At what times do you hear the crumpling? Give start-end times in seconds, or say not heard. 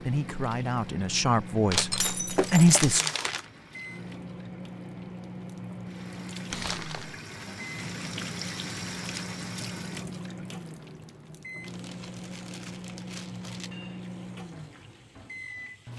1.7-3.5, 6.5-7.2, 11.6-13.7.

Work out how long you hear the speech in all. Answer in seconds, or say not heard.
3 s.